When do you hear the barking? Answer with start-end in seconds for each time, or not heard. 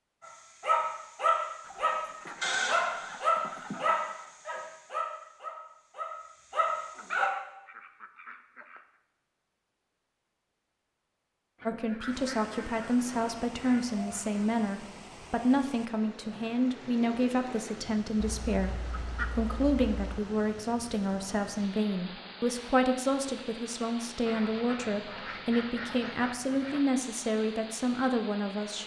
0.2-7.3.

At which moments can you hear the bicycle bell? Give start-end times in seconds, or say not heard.
not heard.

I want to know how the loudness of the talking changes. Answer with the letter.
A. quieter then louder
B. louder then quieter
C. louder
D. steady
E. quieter
D.